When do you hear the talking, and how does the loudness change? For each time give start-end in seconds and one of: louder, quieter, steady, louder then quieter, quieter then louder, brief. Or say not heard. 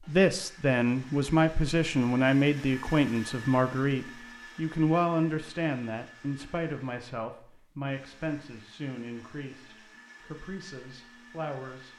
0.1-11.9 quieter.